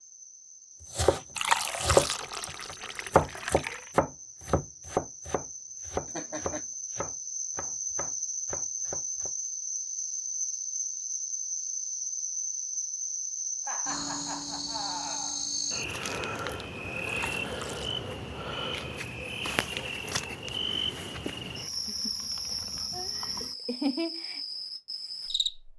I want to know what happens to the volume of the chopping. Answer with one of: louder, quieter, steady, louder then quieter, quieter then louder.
quieter.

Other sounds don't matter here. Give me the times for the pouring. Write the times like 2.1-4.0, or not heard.
1.4-3.9, 17.1-17.9.